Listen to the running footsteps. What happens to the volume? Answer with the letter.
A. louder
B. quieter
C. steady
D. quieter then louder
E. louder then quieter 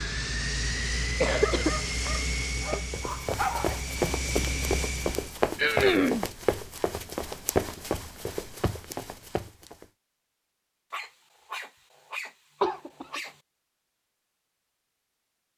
B.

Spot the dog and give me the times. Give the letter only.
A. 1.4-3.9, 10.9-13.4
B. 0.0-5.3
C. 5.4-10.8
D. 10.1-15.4
A.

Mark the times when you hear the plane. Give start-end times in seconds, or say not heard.
0.0-5.3.